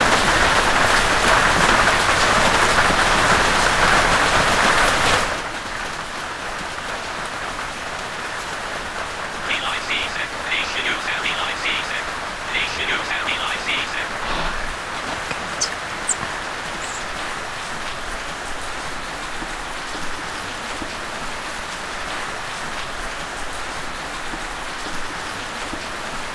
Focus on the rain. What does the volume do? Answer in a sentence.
The volume of the rain goes down.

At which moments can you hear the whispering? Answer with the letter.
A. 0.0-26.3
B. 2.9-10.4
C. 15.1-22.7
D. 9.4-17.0
D.